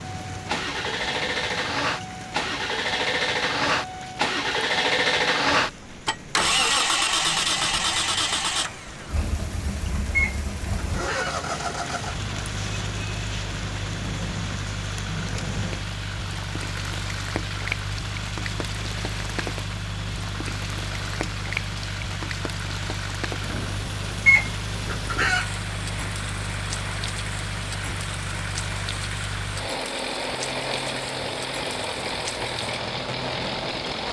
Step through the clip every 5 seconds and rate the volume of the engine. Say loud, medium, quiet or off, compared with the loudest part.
loud, loud, medium, medium, medium, medium, medium.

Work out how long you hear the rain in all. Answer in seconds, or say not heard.
34 s.